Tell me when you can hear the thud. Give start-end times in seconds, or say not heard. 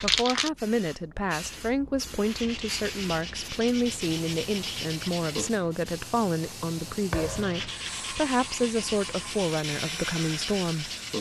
7.1-7.8.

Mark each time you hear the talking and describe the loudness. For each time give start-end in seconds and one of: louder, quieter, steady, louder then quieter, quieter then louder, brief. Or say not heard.
0.0-10.9 steady.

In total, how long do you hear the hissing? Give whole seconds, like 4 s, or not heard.
11 s.